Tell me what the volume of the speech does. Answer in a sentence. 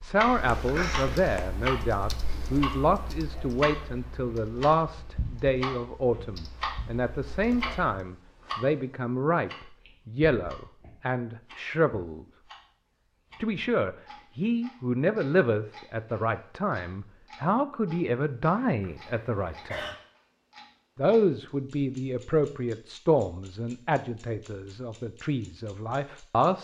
The volume of the speech stays about the same.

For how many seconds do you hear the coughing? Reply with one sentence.
The coughing can be heard for 2 seconds in total.